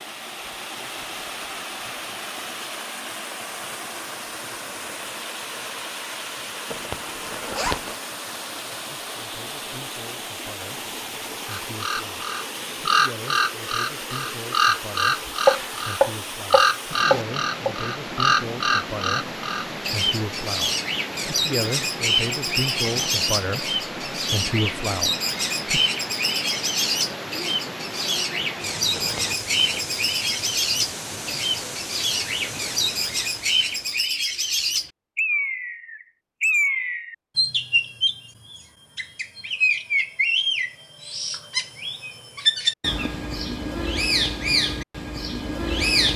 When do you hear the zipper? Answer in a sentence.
The zipper can be heard from 6.7 to 8.0 s and from 28.9 to 29.9 s.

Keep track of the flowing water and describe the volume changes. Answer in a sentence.
The volume of the flowing water stays about the same.